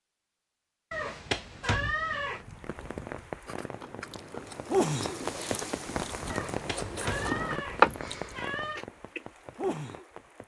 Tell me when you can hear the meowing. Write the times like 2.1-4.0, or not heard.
0.9-2.5, 6.2-8.8.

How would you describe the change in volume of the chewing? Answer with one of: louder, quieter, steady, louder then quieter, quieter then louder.
louder then quieter.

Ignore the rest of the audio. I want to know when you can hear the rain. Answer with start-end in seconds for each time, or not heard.
2.2-10.4.